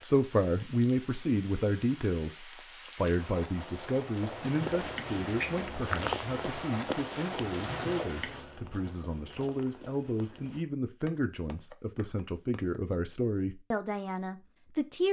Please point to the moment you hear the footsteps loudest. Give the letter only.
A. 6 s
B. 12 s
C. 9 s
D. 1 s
A.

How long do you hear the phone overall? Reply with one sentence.
You can hear the phone for 2 seconds altogether.